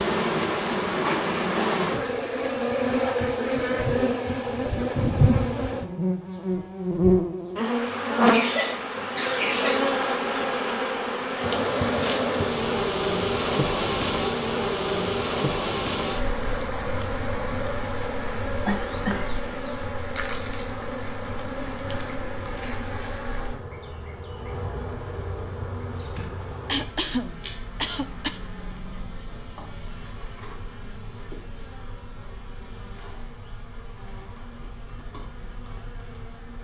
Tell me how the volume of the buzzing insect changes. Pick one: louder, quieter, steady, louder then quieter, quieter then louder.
quieter.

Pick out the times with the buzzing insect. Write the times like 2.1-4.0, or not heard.
0.0-36.5.